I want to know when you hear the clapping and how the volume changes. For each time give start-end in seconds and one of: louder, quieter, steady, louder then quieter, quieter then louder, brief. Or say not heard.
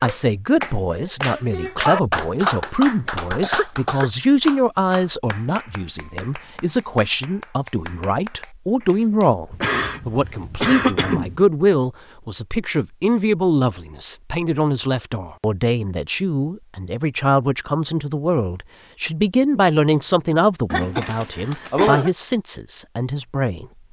0.0-9.3 quieter.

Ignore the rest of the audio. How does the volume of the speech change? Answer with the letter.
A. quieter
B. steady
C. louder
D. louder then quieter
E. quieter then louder
B.